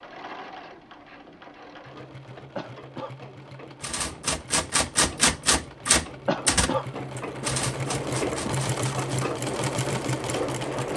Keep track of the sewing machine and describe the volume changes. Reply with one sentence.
The loudness of the sewing machine goes up.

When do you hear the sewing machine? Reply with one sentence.
The sewing machine can be heard from 0.0 to 10.9 s.